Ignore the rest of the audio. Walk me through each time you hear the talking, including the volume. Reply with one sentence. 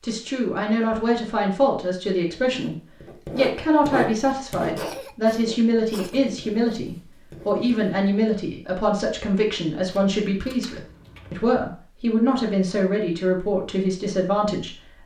The talking can be heard from 0.0 to 15.0 s, at a steady volume.